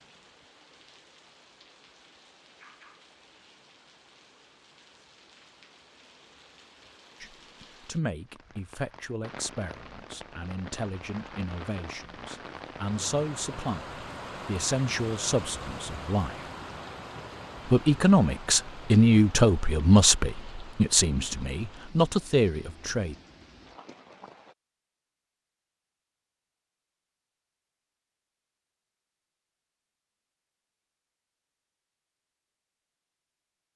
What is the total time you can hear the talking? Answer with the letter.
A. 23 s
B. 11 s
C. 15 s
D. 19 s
C.